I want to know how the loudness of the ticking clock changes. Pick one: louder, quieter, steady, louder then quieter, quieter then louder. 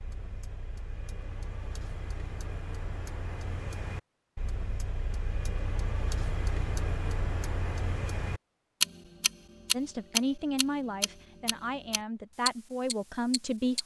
louder then quieter.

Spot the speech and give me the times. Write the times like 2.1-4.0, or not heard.
9.7-13.8.